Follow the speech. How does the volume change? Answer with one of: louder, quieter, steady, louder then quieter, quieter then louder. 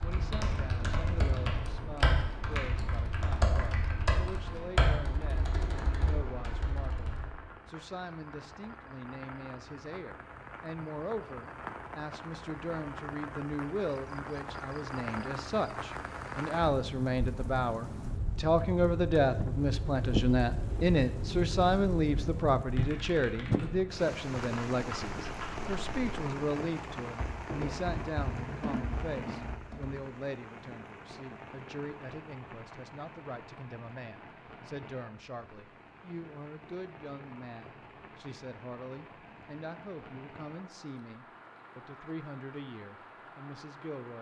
louder then quieter.